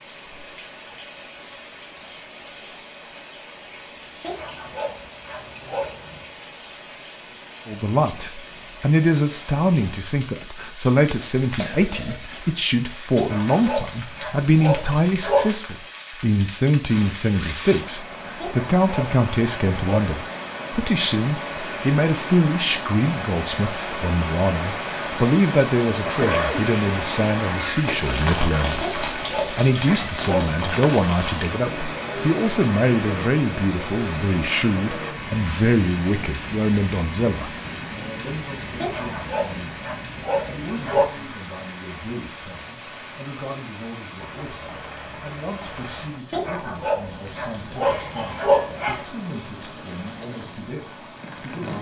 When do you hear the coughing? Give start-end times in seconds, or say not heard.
11.6-12.3, 26.1-26.6, 47.8-48.5.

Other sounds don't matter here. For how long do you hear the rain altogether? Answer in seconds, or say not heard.
52 s.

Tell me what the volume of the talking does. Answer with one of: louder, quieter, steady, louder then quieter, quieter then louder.
quieter.